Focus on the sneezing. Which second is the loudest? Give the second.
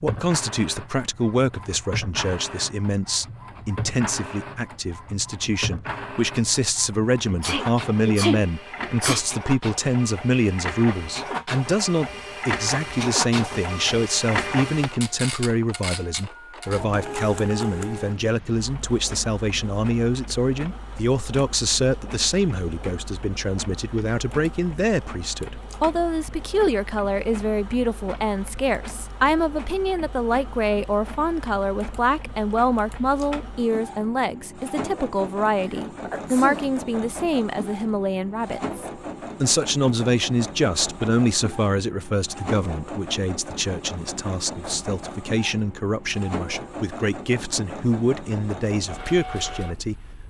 8 s.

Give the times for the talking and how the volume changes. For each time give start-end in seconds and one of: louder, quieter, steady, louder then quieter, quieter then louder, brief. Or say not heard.
0.0-50.0 steady.